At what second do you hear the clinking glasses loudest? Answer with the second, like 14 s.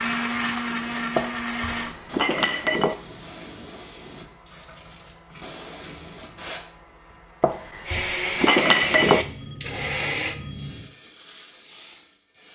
9 s.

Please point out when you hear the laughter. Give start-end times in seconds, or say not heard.
not heard.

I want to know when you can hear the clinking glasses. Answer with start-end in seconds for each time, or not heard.
1.1-3.0, 7.4-9.2.